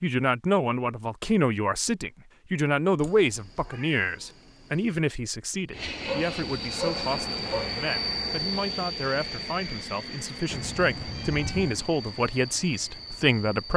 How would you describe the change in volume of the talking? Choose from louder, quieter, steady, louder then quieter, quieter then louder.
quieter then louder.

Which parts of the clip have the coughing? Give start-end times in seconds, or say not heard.
not heard.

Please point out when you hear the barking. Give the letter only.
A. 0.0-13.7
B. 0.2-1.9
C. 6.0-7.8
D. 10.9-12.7
C.